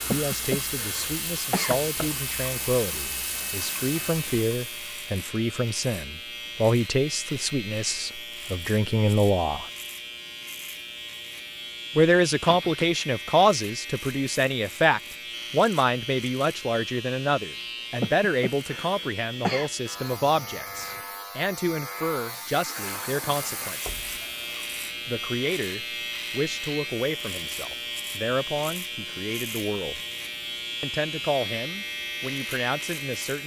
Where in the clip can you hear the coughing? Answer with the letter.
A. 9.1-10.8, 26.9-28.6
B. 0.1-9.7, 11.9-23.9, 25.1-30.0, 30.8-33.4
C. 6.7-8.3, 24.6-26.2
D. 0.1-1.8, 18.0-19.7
D.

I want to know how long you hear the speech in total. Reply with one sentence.
The speech can be heard for 29 seconds in total.